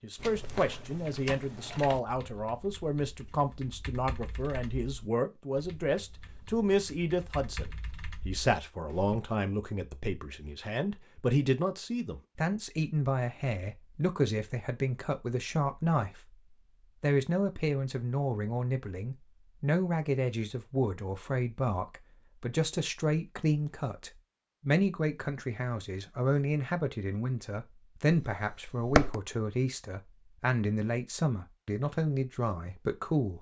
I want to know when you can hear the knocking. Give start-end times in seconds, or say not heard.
28.1-29.1.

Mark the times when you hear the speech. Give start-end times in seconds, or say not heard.
0.0-16.4, 17.0-33.3.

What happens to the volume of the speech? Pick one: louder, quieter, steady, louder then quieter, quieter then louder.
steady.